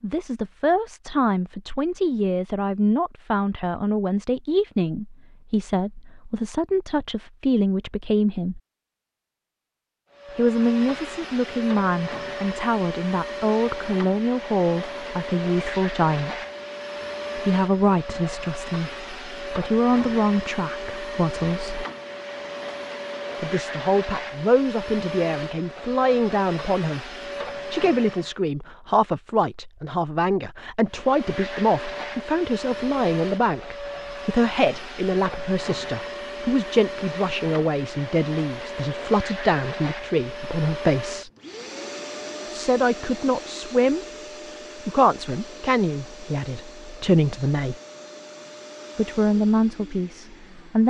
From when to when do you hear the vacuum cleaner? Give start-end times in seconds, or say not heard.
10.1-28.4, 30.9-50.8.